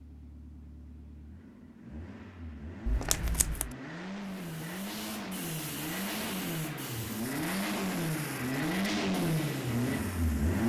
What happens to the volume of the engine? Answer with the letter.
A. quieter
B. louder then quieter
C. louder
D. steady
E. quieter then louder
C.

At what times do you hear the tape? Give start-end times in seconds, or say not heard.
2.9-3.8.